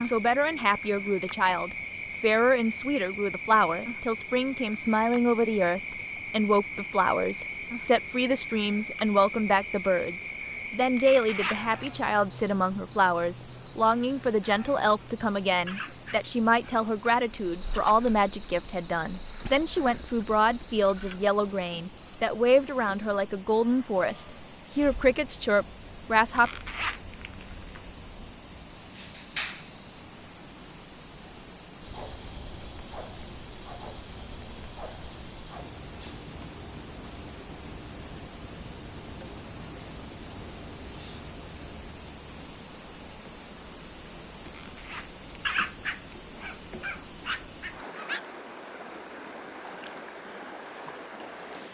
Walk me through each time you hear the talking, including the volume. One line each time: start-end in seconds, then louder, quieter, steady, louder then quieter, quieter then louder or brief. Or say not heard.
0.0-26.5 steady.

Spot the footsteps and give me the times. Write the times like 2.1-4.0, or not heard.
not heard.